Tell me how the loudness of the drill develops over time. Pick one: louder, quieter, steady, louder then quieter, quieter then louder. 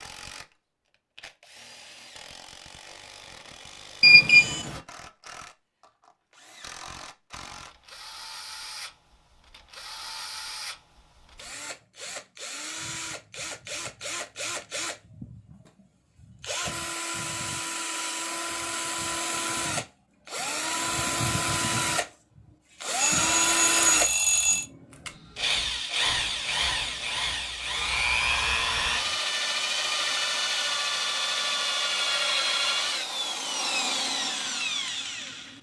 louder.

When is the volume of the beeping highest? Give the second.
4 s.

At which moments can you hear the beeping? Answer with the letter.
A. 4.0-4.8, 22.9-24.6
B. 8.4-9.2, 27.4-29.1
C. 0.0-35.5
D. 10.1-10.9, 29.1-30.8
A.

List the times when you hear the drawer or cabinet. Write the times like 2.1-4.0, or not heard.
not heard.